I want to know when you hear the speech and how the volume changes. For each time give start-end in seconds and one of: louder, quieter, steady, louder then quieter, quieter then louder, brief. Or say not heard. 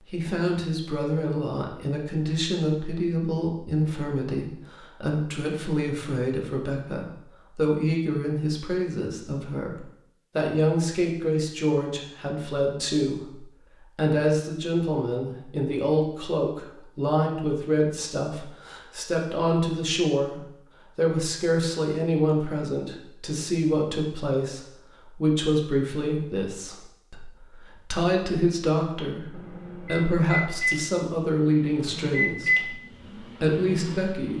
0.1-34.3 steady.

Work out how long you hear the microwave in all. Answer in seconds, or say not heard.
5 s.